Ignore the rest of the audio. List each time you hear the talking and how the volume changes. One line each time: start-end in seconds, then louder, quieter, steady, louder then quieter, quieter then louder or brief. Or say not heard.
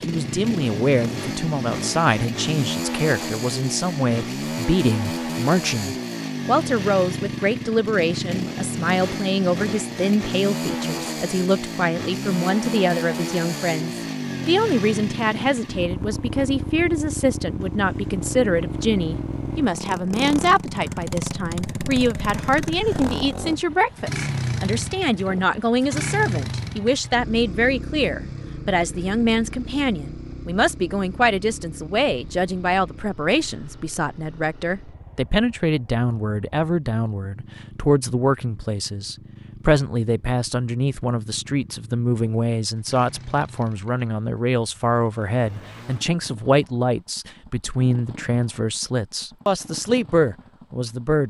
0.1-51.2 steady.